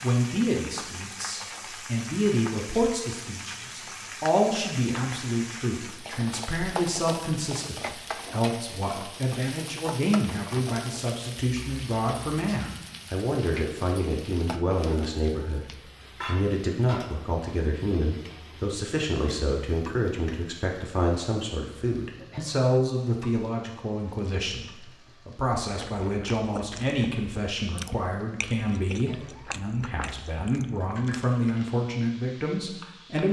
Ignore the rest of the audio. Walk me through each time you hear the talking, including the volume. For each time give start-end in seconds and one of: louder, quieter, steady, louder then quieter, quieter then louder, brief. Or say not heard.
0.0-33.2 steady.